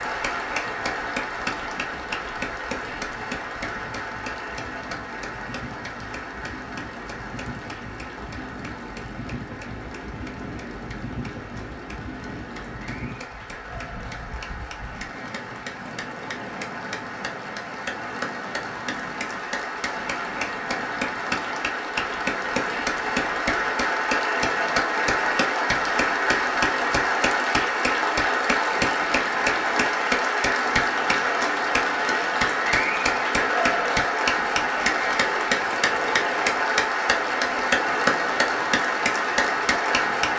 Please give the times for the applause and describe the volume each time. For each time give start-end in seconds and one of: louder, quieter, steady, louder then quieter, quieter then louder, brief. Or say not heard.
0.0-40.3 quieter then louder.